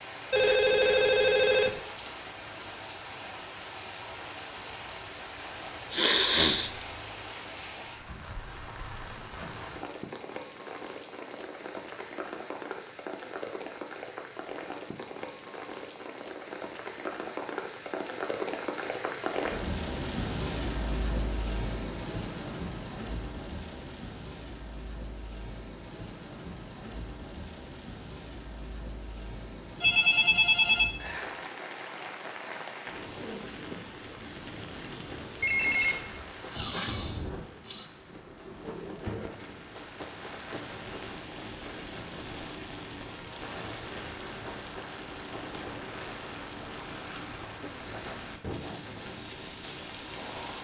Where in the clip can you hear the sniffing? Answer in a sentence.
You can hear the sniffing from 5.7 to 6.7 s and from 35.7 to 37.9 s.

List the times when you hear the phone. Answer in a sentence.
You can hear the phone from 0.3 to 1.8 s, from 29.8 to 30.9 s and from 35.4 to 36.2 s.